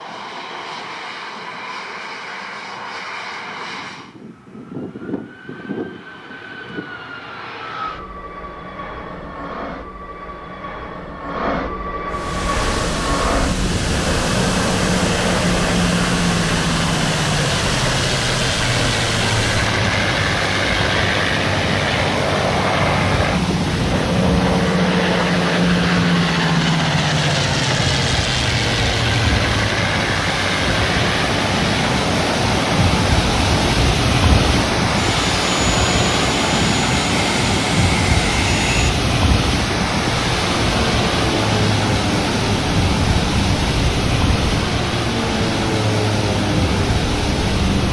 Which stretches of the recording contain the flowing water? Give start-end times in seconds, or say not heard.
12.1-47.8.